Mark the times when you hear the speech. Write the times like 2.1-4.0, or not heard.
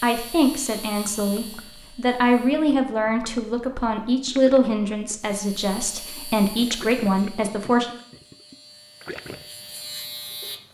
0.0-7.9.